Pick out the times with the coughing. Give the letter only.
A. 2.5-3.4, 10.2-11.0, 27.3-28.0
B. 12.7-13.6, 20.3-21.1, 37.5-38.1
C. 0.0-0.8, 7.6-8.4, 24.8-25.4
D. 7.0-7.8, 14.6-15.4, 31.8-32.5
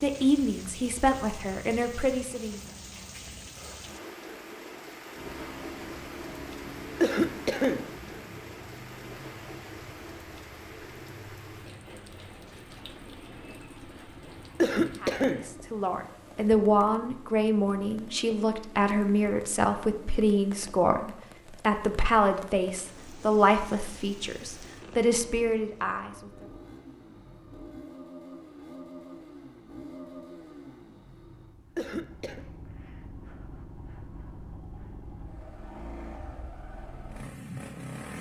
D.